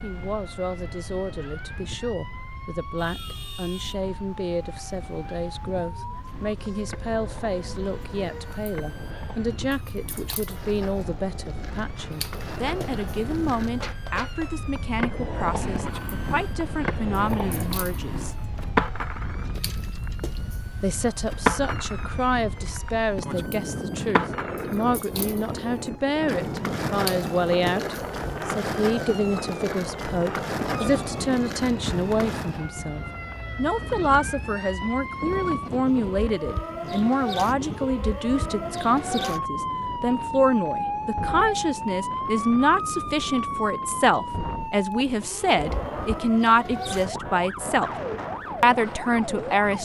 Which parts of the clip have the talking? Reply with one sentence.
The talking can be heard from 0.0 to 18.4 s, from 20.8 to 47.9 s and from 48.6 to 49.8 s.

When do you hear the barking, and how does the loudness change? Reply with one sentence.
You can't hear the barking here.